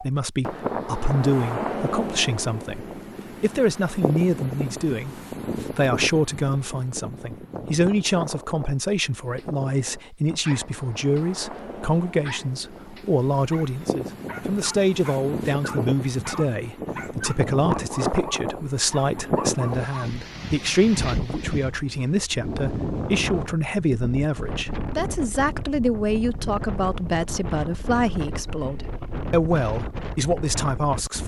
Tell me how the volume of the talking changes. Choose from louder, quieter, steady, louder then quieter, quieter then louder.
steady.